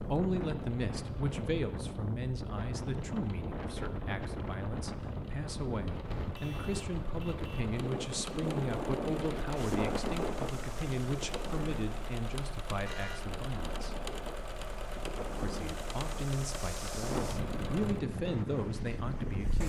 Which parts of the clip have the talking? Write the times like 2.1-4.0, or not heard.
0.0-13.9, 15.3-19.6.